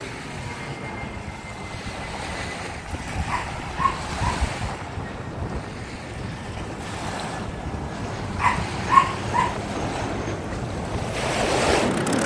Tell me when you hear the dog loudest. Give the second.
9 s.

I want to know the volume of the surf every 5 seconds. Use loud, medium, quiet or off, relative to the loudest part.
medium, medium, loud.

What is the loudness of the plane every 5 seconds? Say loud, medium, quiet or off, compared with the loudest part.
medium, loud, loud.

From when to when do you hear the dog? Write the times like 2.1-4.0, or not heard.
3.2-4.5, 8.3-9.6.